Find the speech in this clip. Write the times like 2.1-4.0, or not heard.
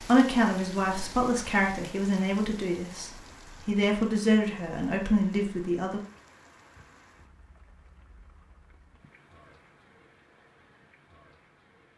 0.0-6.0.